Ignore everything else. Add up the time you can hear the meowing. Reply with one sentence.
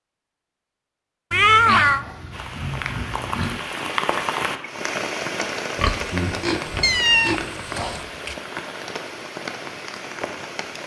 You can hear the meowing for 2 seconds altogether.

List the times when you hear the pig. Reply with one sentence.
You can hear the pig from 1.8 to 3.6 s and from 5.8 to 8.1 s.